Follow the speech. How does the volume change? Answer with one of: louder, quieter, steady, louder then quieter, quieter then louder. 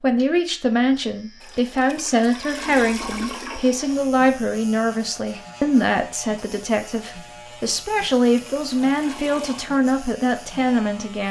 steady.